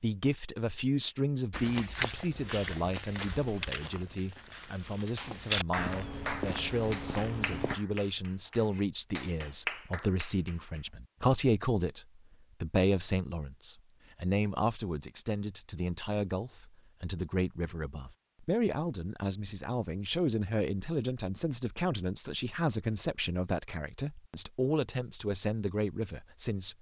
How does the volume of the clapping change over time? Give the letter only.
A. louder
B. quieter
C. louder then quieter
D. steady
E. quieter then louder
E.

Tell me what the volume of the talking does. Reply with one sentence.
The loudness of the talking stays about the same.